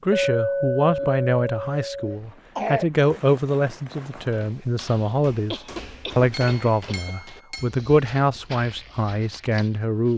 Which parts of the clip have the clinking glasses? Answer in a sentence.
The clinking glasses can be heard from 0.1 to 2.1 s and from 6.3 to 7.7 s.